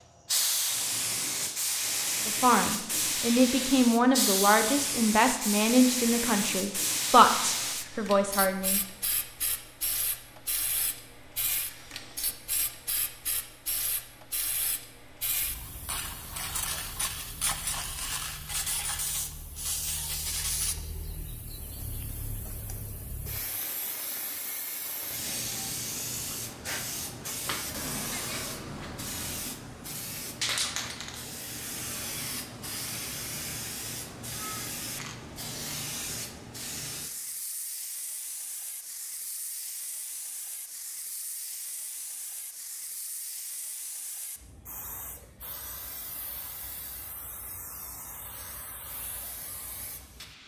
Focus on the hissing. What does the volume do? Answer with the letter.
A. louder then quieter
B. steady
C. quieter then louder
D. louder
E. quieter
E.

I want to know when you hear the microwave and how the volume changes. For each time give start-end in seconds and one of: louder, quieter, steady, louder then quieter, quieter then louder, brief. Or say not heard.
not heard.